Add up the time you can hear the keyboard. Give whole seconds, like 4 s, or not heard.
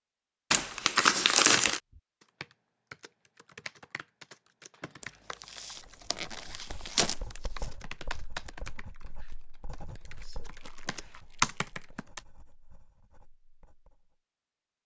10 s.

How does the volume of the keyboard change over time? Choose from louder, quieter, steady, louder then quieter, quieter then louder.
louder.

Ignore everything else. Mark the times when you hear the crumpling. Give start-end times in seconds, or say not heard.
0.5-1.8, 5.0-7.7, 10.3-11.8.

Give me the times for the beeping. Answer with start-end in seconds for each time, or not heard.
not heard.